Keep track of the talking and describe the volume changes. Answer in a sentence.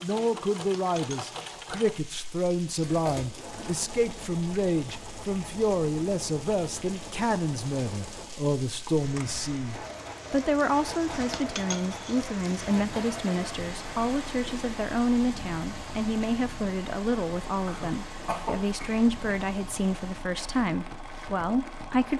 The loudness of the talking stays about the same.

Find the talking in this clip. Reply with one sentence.
The talking can be heard from 0.0 to 22.1 s.